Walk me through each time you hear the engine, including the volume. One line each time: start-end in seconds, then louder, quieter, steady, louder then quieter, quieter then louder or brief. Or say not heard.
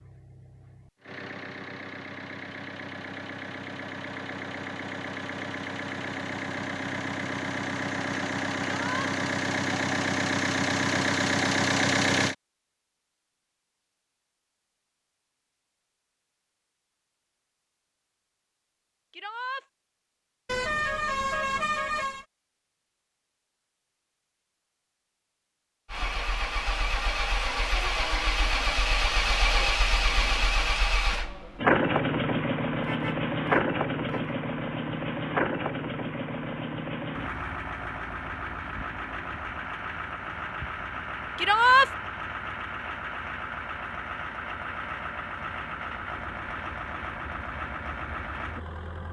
0.0-12.3 louder
25.9-49.0 quieter.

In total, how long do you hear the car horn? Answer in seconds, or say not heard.
3 s.